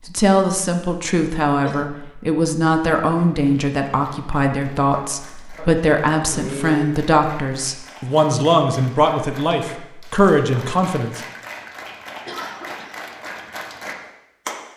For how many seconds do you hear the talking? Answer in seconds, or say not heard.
11 s.